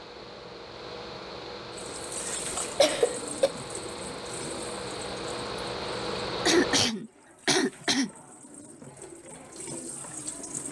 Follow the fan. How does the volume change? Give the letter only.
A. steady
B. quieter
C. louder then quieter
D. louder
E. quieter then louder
D.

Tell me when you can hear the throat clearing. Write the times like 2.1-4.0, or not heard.
2.5-3.5, 6.5-8.1.